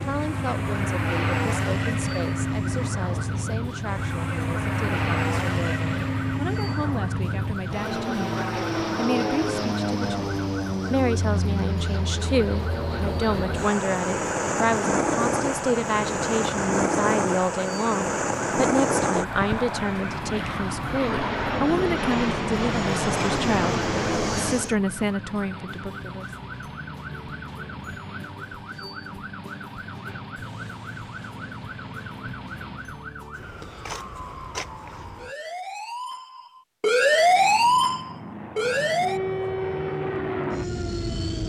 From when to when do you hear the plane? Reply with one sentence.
You can hear the plane from 0.0 to 24.8 s and from 37.2 to 41.4 s.